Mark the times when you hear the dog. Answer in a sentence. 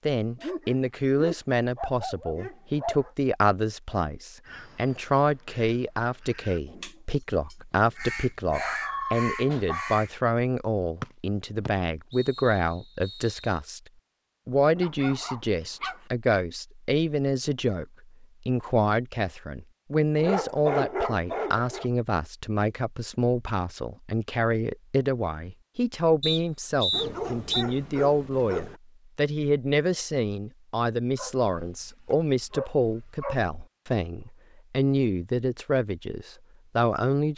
The dog can be heard from 0.4 to 3.1 s, from 8.1 to 10.0 s, from 14.8 to 16.0 s, from 20.1 to 21.9 s, from 26.9 to 28.8 s and from 31.1 to 33.4 s.